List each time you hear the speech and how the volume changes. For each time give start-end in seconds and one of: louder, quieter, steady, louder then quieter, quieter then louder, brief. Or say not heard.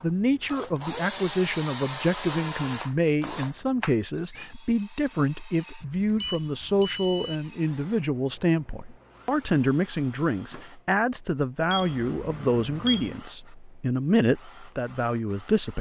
0.0-15.7 steady.